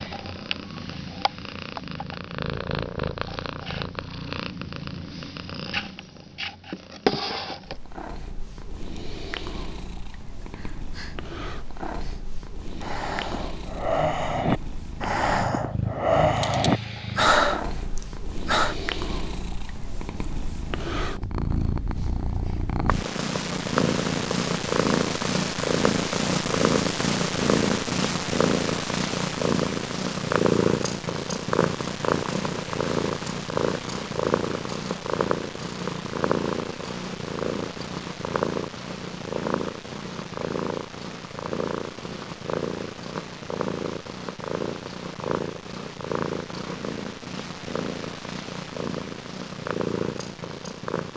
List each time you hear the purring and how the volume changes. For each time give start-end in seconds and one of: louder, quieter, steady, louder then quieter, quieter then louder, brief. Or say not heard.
0.0-51.1 louder then quieter.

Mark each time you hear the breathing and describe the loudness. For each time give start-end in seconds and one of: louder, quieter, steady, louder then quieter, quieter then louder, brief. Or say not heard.
10.4-18.8 louder.